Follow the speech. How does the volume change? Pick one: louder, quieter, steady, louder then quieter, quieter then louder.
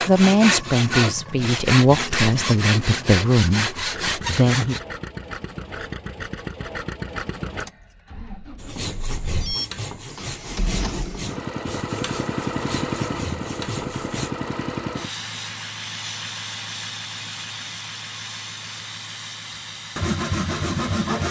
quieter.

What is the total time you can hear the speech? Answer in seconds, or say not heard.
5 s.